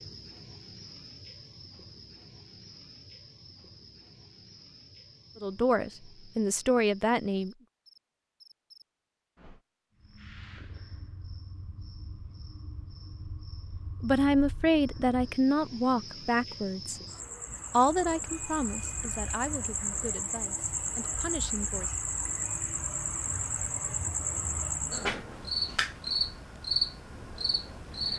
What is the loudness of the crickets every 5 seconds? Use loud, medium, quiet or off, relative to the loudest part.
quiet, quiet, quiet, medium, loud, loud.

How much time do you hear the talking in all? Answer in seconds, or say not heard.
9 s.